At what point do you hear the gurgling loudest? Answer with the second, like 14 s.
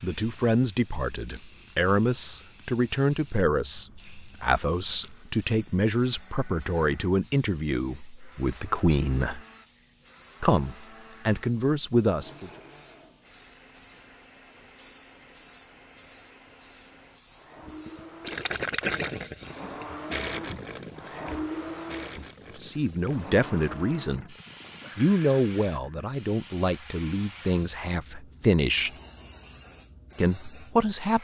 19 s.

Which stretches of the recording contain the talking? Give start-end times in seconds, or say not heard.
0.0-9.4, 10.4-12.5, 22.6-24.2, 24.9-28.9, 30.1-31.2.